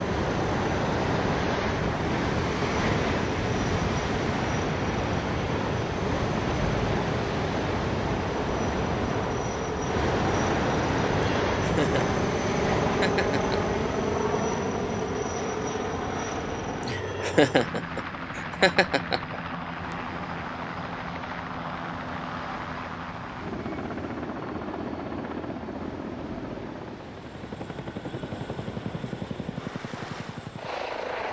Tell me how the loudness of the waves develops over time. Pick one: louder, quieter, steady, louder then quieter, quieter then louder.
quieter.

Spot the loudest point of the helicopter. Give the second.
13 s.